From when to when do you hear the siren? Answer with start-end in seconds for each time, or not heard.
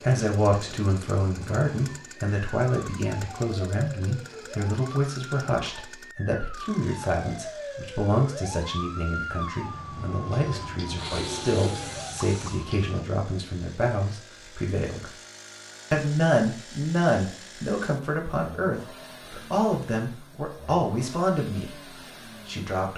0.0-13.1.